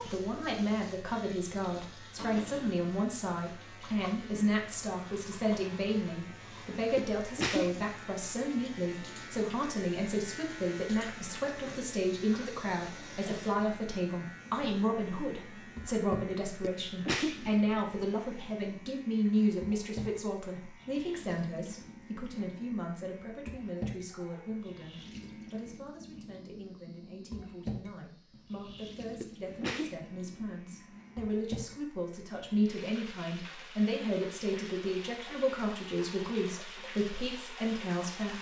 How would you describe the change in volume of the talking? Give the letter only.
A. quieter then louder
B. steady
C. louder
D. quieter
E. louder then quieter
A.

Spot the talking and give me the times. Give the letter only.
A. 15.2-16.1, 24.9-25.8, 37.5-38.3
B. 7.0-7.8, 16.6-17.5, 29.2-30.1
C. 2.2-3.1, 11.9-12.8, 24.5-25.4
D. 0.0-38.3
D.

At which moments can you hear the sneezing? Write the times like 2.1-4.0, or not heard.
7.0-7.8, 16.6-17.5, 29.2-30.1.